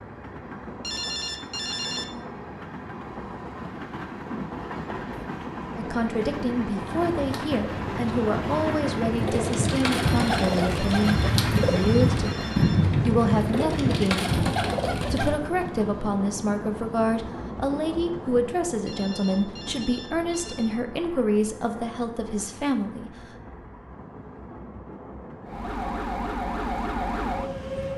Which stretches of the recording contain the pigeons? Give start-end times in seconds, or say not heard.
6.8-15.3.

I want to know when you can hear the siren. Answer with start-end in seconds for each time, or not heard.
25.4-27.9.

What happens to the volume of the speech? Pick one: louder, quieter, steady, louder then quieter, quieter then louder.
steady.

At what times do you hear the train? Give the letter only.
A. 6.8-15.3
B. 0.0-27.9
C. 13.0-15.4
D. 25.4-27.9
B.